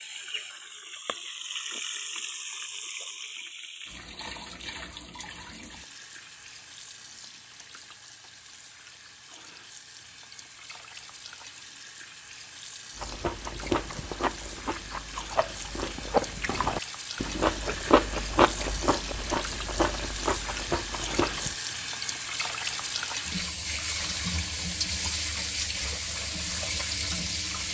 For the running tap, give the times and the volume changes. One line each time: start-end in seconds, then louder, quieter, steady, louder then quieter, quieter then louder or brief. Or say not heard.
0.0-27.6 quieter then louder.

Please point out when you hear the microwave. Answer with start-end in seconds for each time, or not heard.
not heard.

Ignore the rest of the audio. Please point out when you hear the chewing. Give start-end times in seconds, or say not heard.
12.9-21.6.